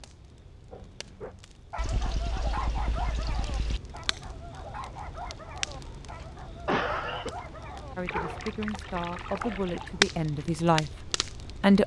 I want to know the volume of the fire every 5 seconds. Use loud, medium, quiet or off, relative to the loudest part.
quiet, quiet, loud.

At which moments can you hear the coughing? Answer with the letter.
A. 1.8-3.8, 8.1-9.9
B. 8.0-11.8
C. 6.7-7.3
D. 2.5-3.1
C.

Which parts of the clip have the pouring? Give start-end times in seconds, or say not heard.
1.8-3.8, 8.1-9.9.